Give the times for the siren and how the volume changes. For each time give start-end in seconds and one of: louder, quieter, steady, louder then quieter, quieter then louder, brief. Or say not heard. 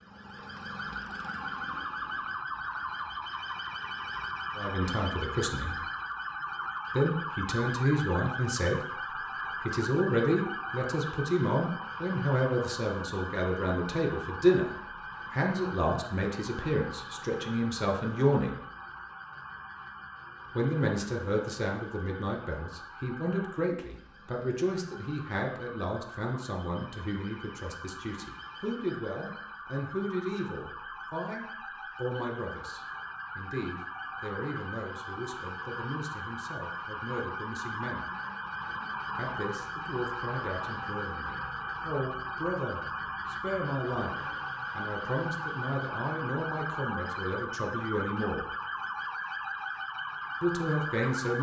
0.0-51.3 quieter then louder.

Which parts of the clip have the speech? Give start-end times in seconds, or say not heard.
4.5-5.8, 7.0-18.6, 20.6-38.1, 39.1-44.1, 44.8-48.5, 50.4-51.3.